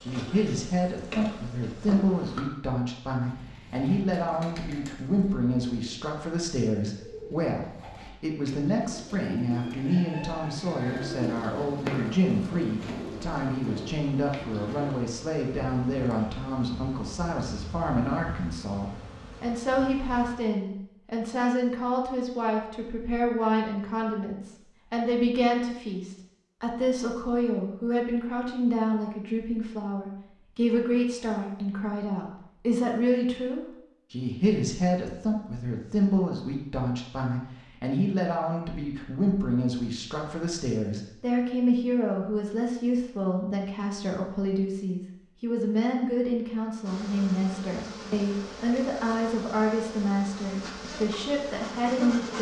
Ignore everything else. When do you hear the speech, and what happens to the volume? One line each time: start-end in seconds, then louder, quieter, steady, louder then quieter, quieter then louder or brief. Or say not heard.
0.0-52.3 steady.